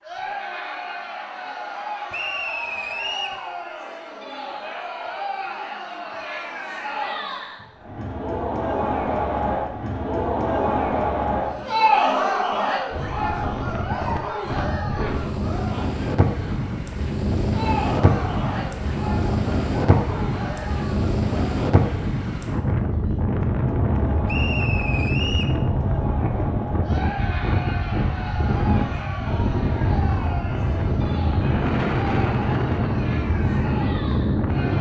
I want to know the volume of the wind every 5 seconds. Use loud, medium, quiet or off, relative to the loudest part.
off, off, medium, loud, loud, loud, loud.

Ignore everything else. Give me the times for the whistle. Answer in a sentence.
The whistle can be heard from 2.1 to 3.4 s and from 24.2 to 25.6 s.